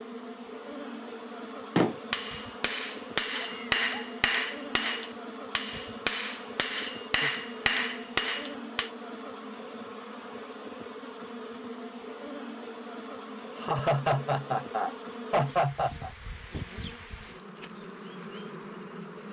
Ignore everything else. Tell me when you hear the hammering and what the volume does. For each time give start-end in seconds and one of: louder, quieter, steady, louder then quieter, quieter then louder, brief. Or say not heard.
1.8-8.9 steady.